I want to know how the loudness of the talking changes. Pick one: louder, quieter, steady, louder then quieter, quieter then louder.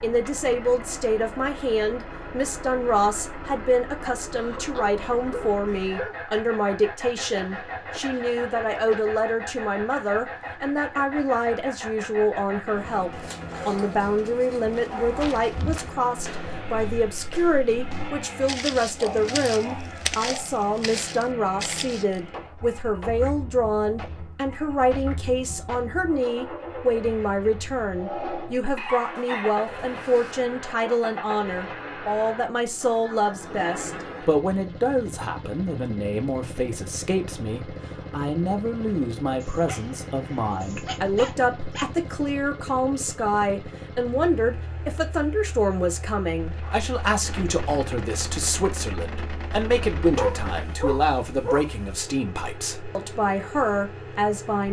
steady.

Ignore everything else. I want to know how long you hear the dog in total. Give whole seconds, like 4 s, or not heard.
12 s.